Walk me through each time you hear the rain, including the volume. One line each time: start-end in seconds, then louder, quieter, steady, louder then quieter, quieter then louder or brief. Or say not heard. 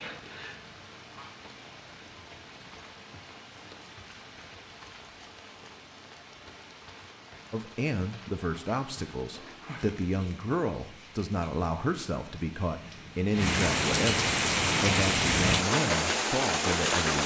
0.0-17.2 louder.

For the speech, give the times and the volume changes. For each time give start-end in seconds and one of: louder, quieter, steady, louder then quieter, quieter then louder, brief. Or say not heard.
7.5-17.2 steady.